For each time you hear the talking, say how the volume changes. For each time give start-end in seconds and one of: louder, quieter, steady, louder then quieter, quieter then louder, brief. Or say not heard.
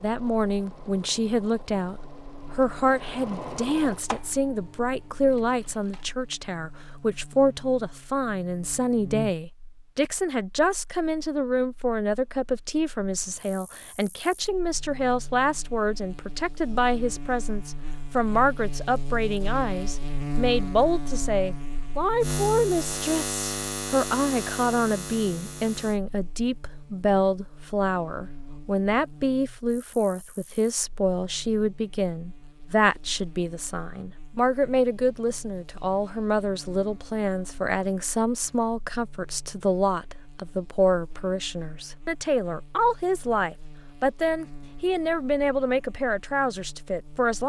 0.0-47.4 steady.